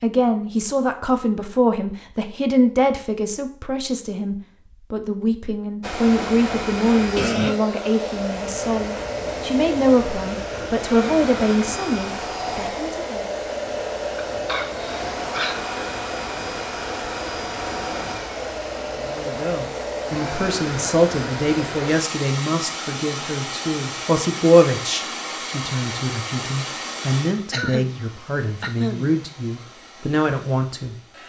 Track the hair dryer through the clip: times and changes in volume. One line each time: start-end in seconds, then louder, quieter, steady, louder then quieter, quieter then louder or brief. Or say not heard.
5.8-31.2 quieter.